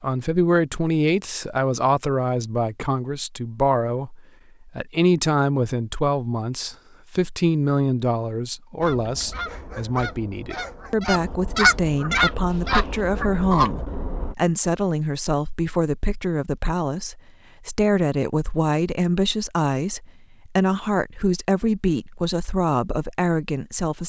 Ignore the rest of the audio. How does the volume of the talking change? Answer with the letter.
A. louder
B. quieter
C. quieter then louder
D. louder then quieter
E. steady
E.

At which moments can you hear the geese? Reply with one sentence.
You can hear the geese from 8.8 to 14.3 s.